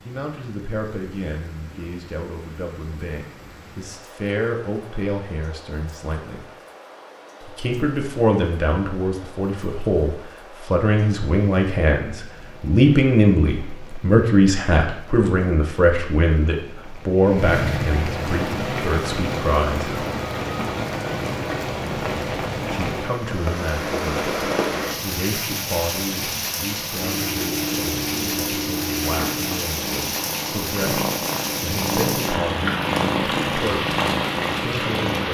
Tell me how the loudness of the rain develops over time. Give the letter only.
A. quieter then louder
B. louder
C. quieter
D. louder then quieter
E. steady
B.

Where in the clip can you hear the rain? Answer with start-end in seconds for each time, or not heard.
0.0-35.2.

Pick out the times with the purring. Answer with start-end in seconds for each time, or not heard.
26.9-35.2.